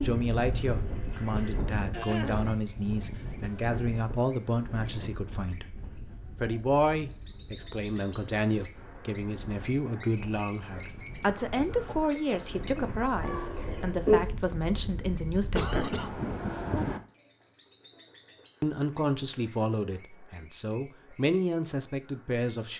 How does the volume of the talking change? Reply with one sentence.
The loudness of the talking stays about the same.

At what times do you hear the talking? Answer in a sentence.
You can hear the talking from 0.0 to 5.7 s, from 6.3 to 16.2 s and from 18.6 to 22.7 s.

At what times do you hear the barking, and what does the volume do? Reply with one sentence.
The barking can't be heard in this clip.